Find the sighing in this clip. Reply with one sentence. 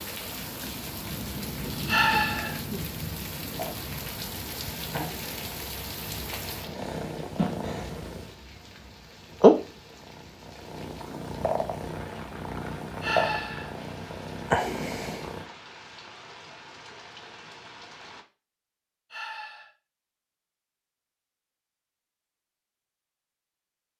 The sighing can be heard from 1.9 to 2.6 s, from 13.0 to 13.8 s and from 19.1 to 19.7 s.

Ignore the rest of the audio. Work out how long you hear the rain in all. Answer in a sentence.
You can hear the rain for 18 seconds altogether.